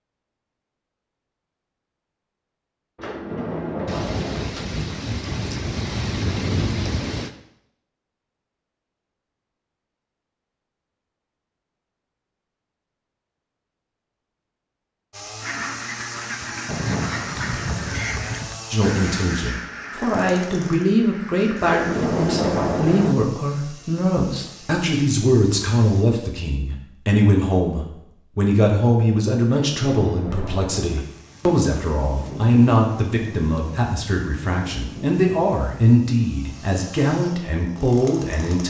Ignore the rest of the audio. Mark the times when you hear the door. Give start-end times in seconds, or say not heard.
3.0-4.5, 21.6-23.1, 29.5-31.0.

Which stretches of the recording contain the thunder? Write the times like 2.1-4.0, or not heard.
3.9-7.3, 16.6-18.6, 30.9-35.8.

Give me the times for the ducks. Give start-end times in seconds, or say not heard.
15.4-21.8.